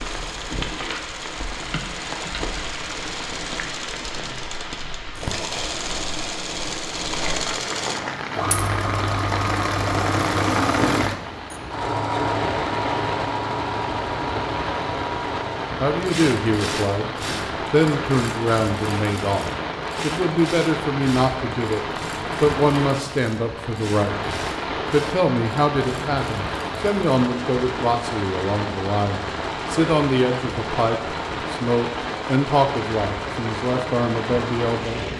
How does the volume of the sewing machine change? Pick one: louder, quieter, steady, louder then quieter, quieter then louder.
louder then quieter.